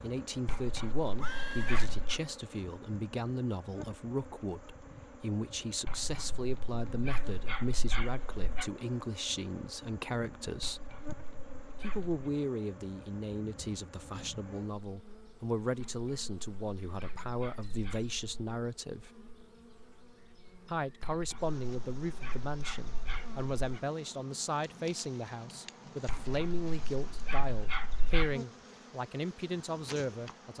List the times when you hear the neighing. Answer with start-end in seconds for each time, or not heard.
1.1-1.9.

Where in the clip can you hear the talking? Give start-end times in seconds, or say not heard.
0.0-10.9, 11.8-19.1, 20.6-30.5.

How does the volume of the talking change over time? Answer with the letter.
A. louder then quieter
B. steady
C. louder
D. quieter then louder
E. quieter
B.